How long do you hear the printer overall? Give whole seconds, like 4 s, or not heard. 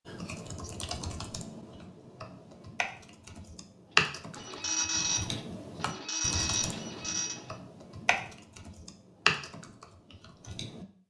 3 s.